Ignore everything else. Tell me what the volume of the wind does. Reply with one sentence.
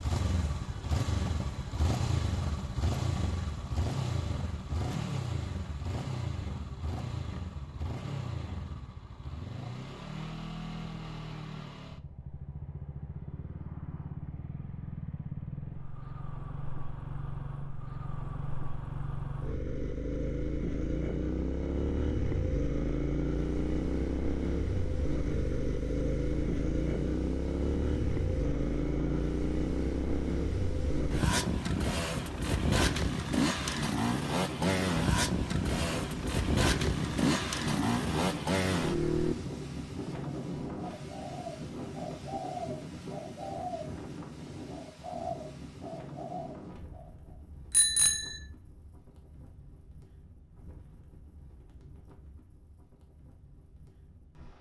The volume of the wind goes up, then down.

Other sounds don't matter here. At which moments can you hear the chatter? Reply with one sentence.
The chatter can't be heard in this clip.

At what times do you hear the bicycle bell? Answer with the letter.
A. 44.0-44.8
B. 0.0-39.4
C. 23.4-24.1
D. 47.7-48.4
D.